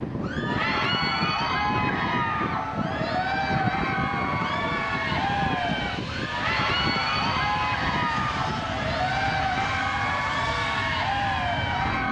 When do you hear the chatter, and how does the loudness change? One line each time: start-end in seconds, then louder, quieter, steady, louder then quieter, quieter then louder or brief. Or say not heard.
0.1-12.0 steady.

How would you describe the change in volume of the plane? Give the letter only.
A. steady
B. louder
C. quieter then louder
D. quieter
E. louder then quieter
A.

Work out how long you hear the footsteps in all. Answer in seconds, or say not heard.
not heard.